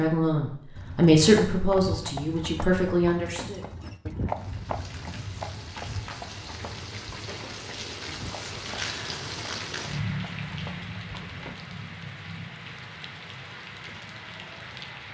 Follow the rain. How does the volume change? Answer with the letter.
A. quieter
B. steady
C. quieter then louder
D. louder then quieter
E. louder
D.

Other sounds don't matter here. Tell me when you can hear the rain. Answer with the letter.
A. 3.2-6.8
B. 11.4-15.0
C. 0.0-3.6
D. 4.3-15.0
D.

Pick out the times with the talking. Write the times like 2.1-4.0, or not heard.
0.0-3.6.